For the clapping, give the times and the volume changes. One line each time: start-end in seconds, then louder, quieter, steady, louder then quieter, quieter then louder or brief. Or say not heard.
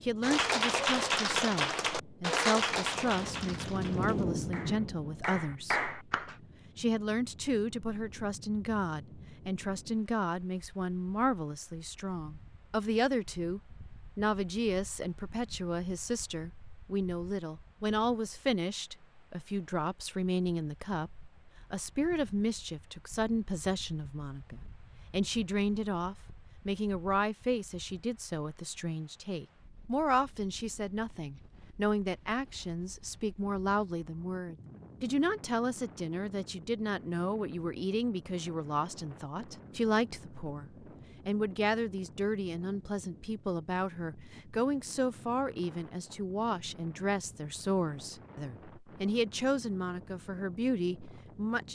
0.2-6.3 quieter then louder.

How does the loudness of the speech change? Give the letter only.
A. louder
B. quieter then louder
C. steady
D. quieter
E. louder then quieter
C.